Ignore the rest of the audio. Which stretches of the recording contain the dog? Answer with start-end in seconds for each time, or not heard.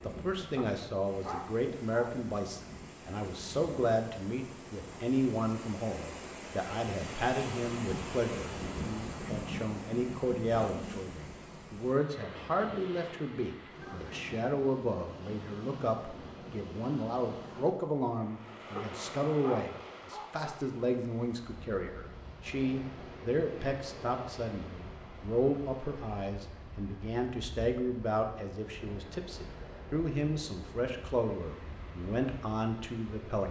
0.6-2.1, 18.8-20.6.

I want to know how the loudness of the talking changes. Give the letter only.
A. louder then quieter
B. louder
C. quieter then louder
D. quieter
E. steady
E.